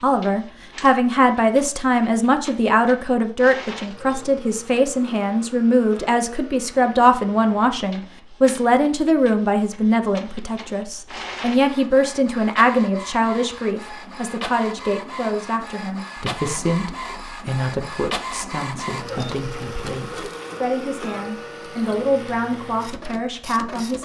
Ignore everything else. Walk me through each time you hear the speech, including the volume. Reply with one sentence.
You can hear the speech from 0.0 to 24.0 s, getting quieter.